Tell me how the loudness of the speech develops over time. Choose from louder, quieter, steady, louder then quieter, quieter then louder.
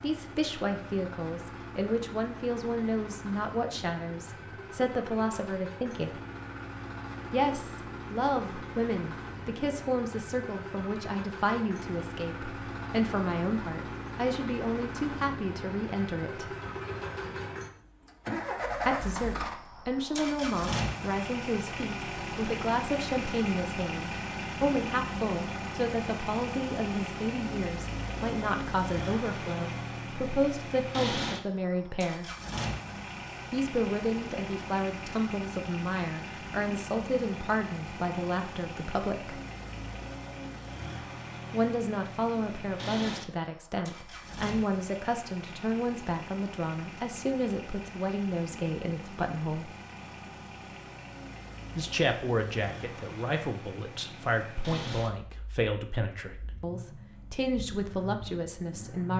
steady.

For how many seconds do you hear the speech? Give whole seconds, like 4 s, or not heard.
50 s.